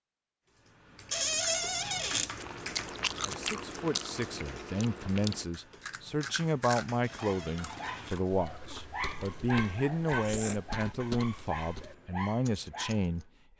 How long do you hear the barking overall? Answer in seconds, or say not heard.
6 s.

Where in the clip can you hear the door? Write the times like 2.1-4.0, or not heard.
1.1-2.3, 7.0-8.2.